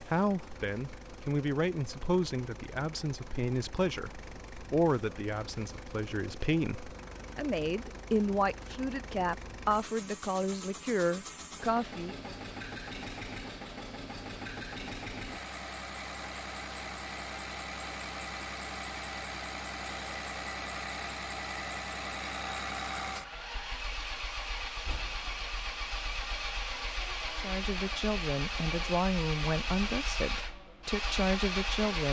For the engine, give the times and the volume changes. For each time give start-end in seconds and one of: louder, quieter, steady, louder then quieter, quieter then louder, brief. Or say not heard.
0.0-32.0 louder.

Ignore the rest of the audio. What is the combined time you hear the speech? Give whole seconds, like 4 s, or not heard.
17 s.